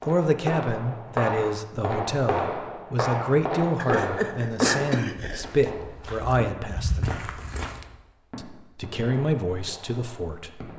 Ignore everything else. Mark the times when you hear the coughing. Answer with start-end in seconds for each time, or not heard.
3.8-5.5.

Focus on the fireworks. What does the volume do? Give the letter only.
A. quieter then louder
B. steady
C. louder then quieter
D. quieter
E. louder
D.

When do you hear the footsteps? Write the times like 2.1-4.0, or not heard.
5.3-7.8.